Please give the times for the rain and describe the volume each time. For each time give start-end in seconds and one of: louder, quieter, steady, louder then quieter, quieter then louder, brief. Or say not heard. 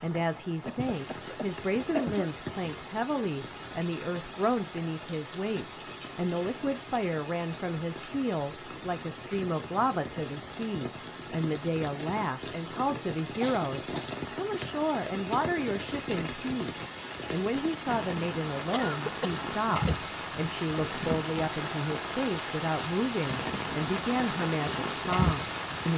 0.0-25.9 louder.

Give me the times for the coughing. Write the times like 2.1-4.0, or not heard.
0.7-2.3, 13.4-14.2, 18.7-20.0.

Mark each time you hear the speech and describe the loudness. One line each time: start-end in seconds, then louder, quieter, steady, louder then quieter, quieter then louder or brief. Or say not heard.
0.0-25.9 steady.